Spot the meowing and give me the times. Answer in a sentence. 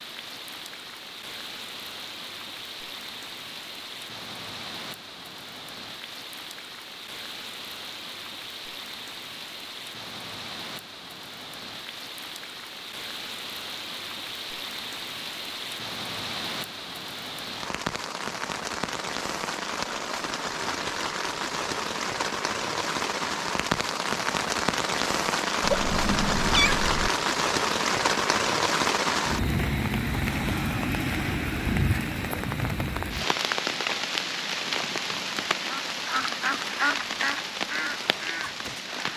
The meowing can be heard from 25.6 to 27.1 s.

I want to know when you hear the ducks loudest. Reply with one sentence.
The loudest moment of the ducks is at 37 seconds.